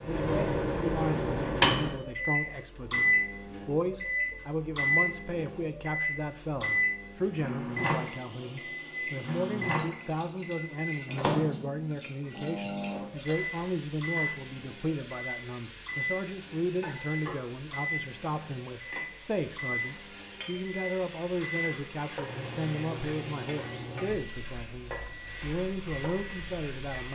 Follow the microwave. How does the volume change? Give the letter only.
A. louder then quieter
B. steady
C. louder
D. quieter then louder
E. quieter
E.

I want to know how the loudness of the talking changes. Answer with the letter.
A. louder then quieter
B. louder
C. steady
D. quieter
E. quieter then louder
C.